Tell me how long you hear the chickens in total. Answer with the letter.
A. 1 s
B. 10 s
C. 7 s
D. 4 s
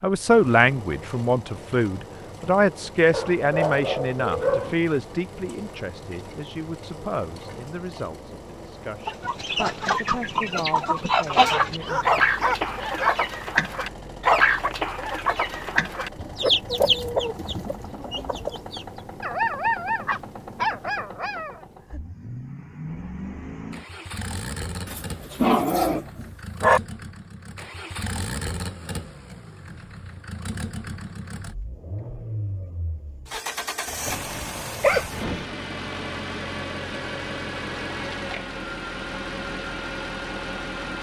B.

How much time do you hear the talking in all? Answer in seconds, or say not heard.
12 s.